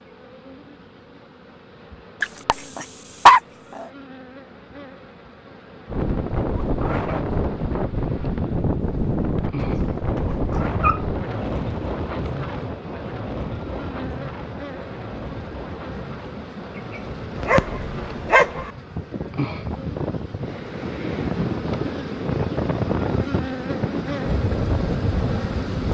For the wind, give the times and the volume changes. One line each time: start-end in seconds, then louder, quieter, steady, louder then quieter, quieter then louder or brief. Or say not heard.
5.8-25.8 quieter then louder.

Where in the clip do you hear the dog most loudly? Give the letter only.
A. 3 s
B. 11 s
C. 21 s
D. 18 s
A.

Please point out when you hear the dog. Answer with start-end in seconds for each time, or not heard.
2.2-3.9, 9.6-11.1, 17.4-18.7.